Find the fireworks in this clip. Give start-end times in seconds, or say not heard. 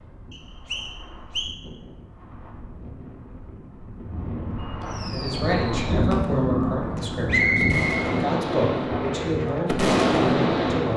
4.8-10.9.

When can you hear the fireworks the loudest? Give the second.
10 s.